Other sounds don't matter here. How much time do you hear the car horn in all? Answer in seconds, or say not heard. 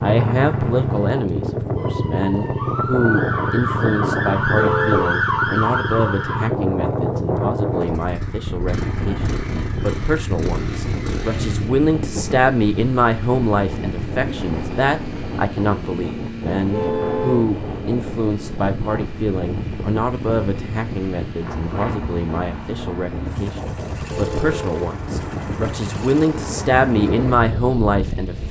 2 s.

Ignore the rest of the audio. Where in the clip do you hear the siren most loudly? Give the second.
5 s.